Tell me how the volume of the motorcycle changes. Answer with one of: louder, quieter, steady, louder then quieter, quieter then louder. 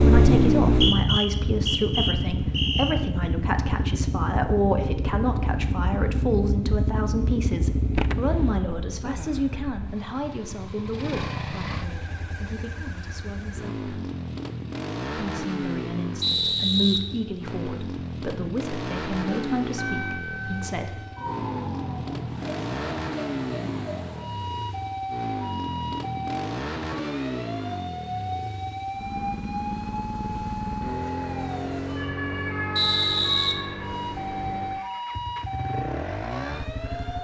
quieter.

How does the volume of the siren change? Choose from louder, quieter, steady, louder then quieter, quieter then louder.
steady.